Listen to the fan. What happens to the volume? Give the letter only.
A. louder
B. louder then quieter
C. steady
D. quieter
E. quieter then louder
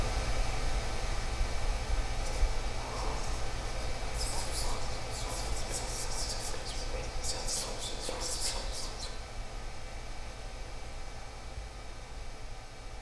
D.